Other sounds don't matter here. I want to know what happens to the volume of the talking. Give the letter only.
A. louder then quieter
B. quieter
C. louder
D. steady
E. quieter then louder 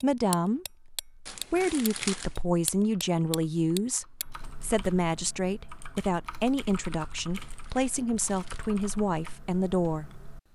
D.